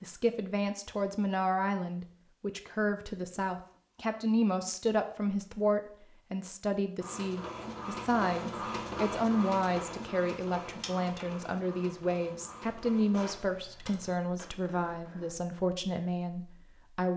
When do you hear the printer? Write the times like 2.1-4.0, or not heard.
7.0-15.3.